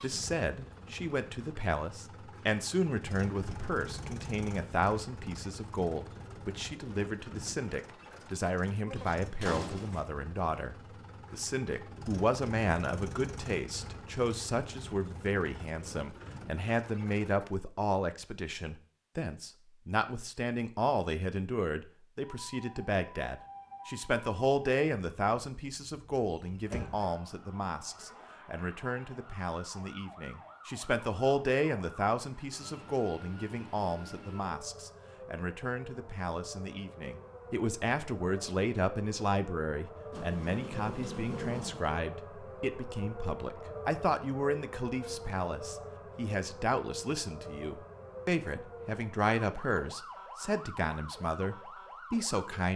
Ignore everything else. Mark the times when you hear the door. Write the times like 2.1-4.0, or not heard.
9.4-10.0, 26.7-27.1, 40.1-42.0.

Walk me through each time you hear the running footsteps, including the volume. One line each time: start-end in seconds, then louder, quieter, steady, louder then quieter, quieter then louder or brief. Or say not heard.
not heard.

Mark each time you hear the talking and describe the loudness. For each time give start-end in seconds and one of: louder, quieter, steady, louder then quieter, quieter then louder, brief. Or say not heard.
0.0-52.7 steady.